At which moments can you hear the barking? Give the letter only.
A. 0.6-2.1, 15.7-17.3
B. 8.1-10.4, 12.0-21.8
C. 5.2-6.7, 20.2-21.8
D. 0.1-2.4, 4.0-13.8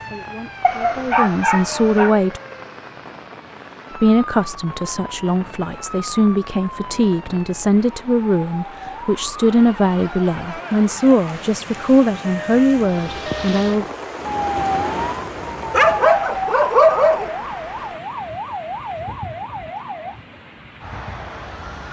A.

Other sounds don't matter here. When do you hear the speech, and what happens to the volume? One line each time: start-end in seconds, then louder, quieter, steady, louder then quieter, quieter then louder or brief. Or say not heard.
0.1-2.4 brief
4.0-13.8 louder.